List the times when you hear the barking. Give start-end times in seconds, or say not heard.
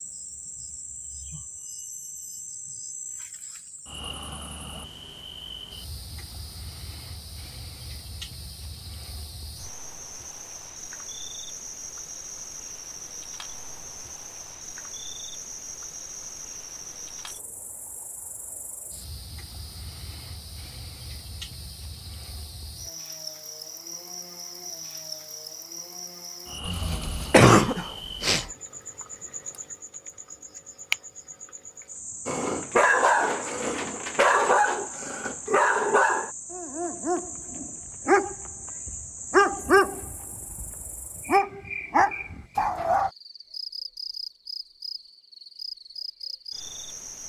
32.2-43.1.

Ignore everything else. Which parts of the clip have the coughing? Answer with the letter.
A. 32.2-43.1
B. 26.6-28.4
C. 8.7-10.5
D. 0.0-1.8
B.